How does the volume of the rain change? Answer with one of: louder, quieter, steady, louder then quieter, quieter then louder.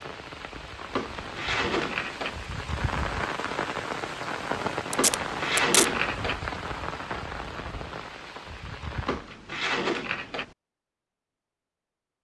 louder then quieter.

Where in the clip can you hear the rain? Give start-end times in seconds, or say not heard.
0.0-9.3.